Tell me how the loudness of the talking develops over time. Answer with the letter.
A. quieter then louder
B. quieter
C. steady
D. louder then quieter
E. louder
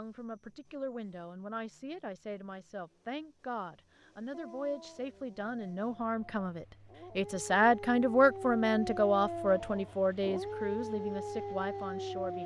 D.